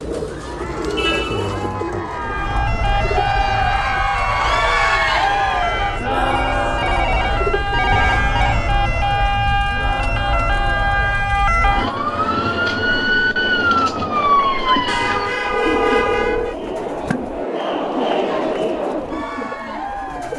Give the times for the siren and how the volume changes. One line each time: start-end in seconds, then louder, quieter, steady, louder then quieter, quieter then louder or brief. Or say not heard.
2.1-15.3 louder.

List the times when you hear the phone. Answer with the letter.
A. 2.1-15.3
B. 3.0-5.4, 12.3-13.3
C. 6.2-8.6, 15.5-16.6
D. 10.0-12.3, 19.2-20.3
C.